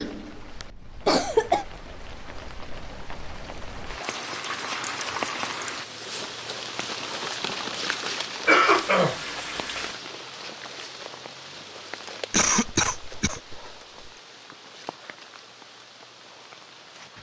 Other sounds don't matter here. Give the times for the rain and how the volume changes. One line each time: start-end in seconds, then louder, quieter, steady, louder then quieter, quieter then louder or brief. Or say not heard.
0.0-17.1 louder then quieter.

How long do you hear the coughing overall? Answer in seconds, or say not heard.
4 s.